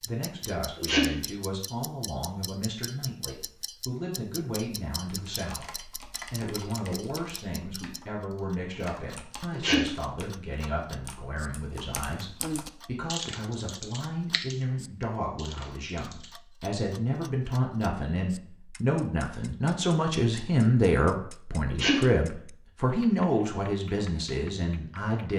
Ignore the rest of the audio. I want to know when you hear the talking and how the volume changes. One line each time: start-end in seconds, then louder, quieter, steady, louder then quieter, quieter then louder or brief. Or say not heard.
0.1-25.3 louder.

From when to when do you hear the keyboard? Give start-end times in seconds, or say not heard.
5.0-16.4.